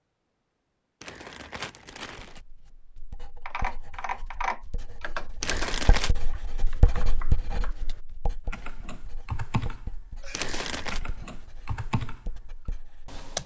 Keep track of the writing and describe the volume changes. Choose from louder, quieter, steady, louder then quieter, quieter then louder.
louder then quieter.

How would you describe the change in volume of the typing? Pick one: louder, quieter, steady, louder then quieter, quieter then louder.
quieter then louder.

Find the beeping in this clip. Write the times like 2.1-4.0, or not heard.
not heard.